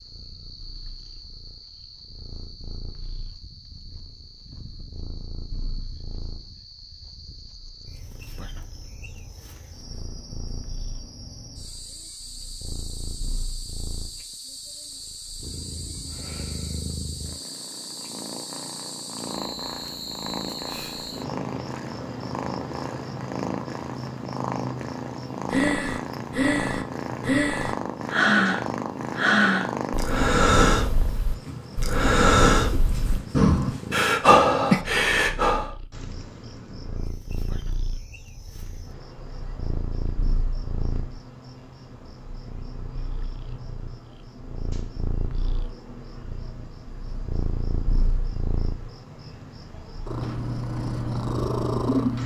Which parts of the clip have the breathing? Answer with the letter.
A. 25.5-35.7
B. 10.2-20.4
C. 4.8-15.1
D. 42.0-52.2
A.